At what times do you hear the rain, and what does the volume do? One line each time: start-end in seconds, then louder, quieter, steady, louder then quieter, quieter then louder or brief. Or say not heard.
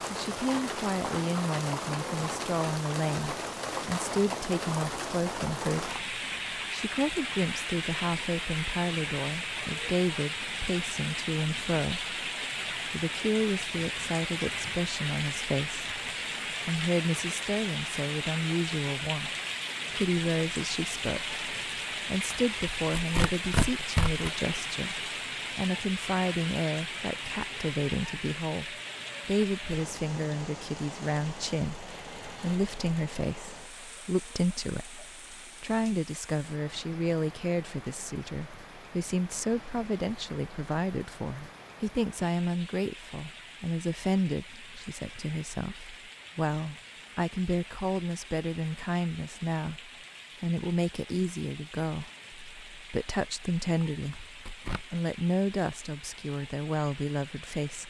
0.0-57.8 quieter.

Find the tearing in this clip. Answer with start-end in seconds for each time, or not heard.
22.4-24.3, 53.9-54.9.